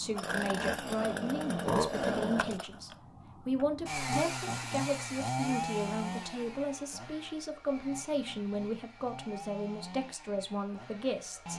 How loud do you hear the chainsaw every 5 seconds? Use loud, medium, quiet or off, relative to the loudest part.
loud, medium, quiet.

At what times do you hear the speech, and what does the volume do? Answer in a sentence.
The speech can be heard from 0.0 to 11.5 s, at a steady volume.